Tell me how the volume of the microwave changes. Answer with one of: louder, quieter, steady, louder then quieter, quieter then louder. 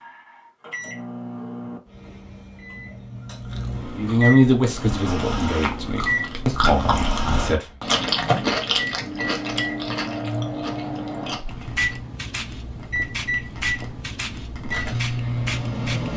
louder.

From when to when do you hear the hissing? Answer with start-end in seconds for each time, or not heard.
11.4-16.1.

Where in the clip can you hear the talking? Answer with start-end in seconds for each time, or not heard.
4.0-7.7.